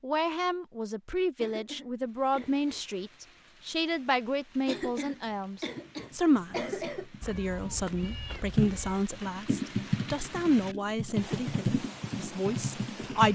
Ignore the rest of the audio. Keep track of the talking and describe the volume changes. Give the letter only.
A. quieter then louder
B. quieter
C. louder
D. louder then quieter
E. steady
E.